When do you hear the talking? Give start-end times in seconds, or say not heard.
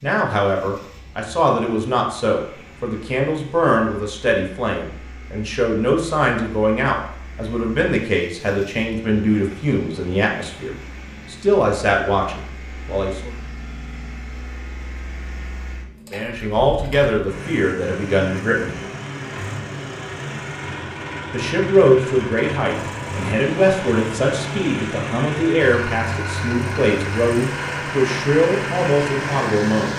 0.0-13.3, 16.1-18.8, 21.3-29.9.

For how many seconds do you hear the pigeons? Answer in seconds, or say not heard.
not heard.